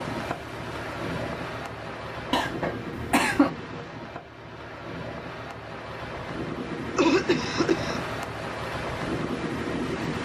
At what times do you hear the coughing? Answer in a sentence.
You can hear the coughing from 2.3 to 3.5 s and from 7.0 to 8.0 s.